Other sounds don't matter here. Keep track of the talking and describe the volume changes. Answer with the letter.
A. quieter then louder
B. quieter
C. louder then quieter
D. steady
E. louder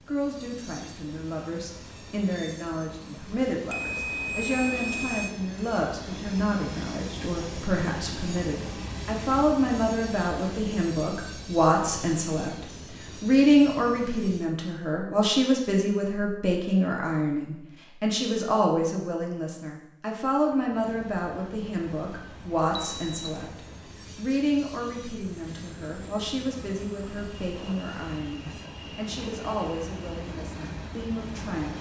C.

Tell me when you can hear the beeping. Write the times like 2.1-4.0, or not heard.
3.6-5.3, 22.7-23.4.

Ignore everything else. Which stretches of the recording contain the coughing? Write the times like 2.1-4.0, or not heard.
not heard.